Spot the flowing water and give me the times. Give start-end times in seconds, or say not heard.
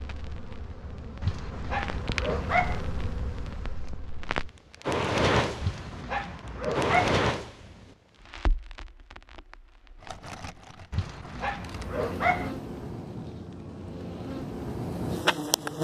not heard.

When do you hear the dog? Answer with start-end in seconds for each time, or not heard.
1.2-2.8, 5.6-7.2, 10.9-12.6.